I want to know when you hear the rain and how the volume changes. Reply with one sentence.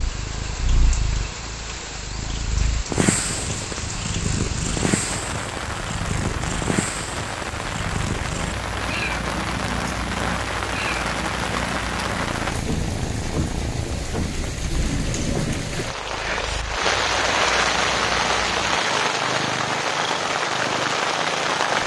The rain can be heard from 0.0 to 21.8 s, getting louder.